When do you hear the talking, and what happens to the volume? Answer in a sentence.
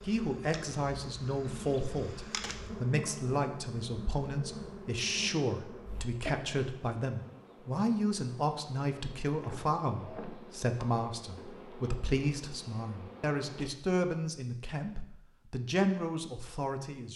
You can hear the talking from 0.0 to 17.1 s, at a steady volume.